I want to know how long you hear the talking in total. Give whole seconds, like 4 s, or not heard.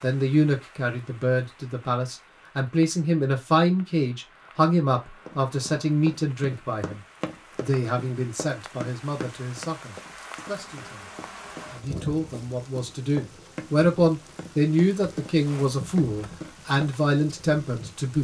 17 s.